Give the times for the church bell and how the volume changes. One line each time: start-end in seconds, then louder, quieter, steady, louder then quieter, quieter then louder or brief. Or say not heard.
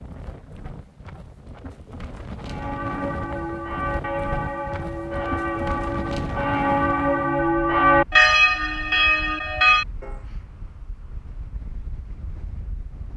2.4-10.2 louder.